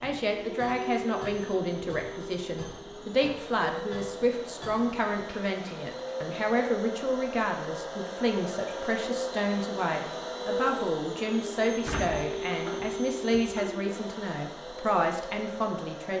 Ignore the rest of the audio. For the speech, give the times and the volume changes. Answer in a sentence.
You can hear the speech from 0.0 to 16.1 s, at a steady volume.